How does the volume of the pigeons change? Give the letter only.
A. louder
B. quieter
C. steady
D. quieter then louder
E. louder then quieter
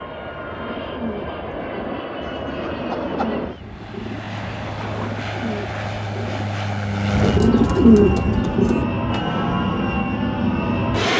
A.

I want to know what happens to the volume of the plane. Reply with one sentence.
The loudness of the plane goes up.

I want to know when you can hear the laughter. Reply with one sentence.
The laughter can be heard from 2.2 to 3.6 s.